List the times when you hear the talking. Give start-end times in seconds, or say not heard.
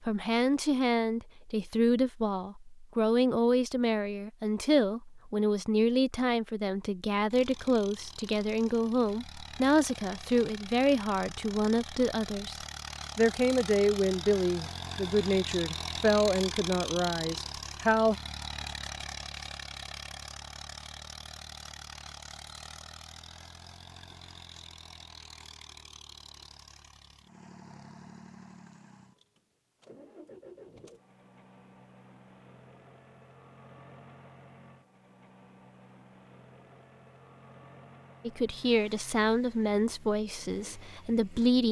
0.1-12.6, 13.2-18.1, 38.2-41.6.